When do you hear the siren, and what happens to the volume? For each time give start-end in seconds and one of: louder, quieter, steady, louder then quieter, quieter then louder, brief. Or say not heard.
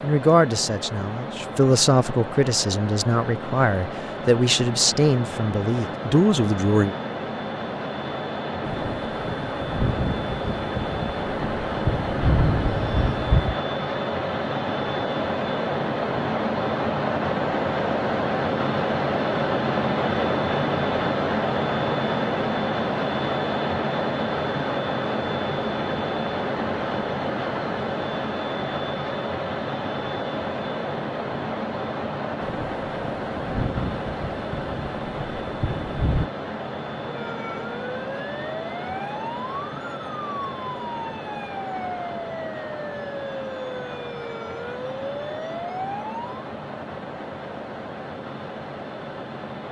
37.0-46.5 steady.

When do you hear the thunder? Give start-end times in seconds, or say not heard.
8.6-13.6, 32.4-36.3.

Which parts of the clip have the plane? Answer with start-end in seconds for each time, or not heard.
0.0-49.6.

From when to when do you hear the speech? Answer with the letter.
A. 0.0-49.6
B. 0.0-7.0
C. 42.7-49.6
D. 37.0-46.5
B.